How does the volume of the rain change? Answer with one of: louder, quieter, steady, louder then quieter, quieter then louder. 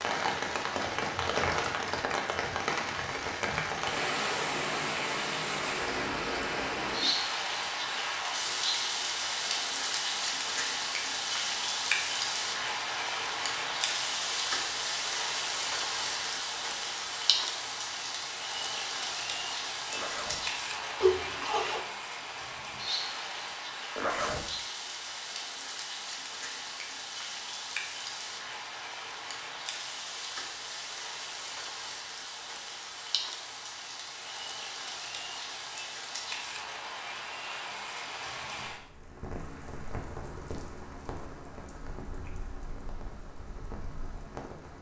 quieter.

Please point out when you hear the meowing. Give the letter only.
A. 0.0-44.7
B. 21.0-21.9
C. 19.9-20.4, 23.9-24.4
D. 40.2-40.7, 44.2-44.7
B.